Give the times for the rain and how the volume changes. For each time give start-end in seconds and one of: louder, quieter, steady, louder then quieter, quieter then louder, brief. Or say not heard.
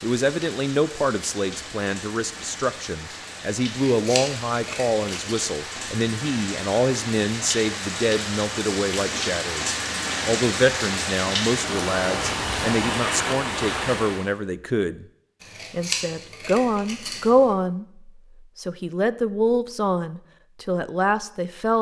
0.0-14.3 louder.